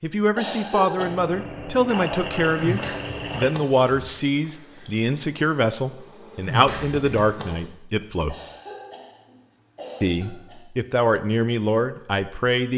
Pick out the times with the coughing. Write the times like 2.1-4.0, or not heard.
0.3-1.2, 8.2-10.7.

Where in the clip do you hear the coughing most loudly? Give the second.
1 s.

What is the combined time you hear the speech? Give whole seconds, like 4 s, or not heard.
11 s.